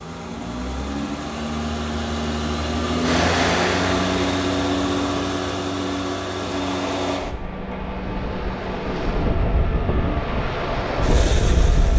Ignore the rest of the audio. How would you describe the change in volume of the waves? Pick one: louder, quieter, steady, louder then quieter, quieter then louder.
quieter then louder.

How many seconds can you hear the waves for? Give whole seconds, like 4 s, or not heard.
9 s.